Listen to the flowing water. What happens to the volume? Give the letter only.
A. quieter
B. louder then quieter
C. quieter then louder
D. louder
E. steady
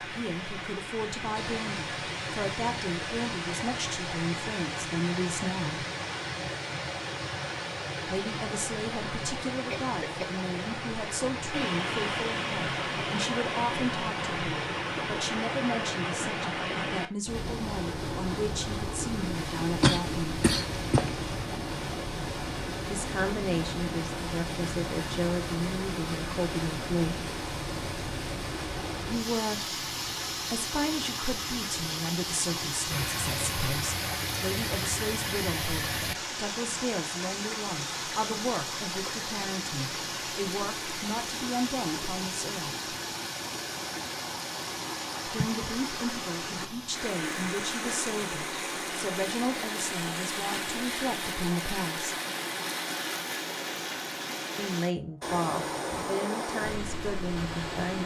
E.